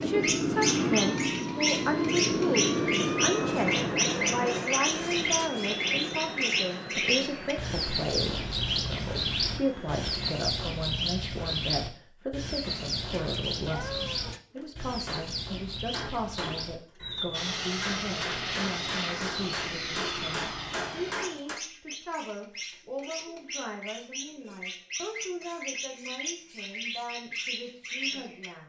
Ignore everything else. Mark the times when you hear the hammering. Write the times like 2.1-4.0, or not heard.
14.6-21.6.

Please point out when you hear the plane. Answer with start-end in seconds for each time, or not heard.
0.0-10.4, 17.3-21.1.